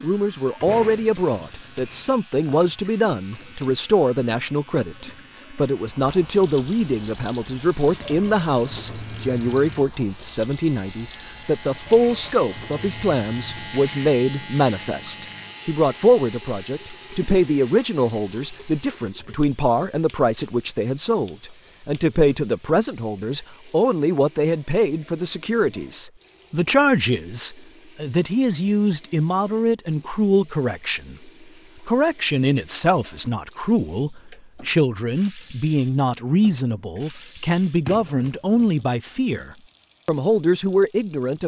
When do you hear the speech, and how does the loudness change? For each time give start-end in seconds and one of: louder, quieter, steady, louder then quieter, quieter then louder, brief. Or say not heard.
0.0-41.4 steady.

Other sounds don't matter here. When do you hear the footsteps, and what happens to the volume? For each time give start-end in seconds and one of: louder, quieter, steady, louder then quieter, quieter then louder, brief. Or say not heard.
not heard.